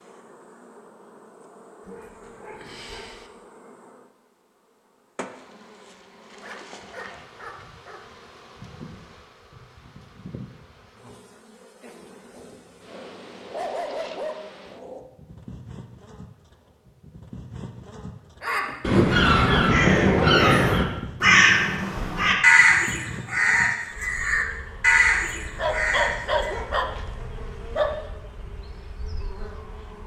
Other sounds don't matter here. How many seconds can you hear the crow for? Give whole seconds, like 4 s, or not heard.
8 s.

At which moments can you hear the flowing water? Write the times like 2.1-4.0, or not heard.
not heard.